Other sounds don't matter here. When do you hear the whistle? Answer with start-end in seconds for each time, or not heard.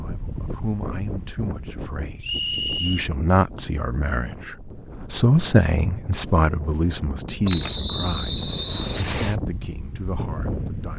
2.2-3.1, 7.5-9.3.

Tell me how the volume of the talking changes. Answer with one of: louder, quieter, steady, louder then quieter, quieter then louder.
louder then quieter.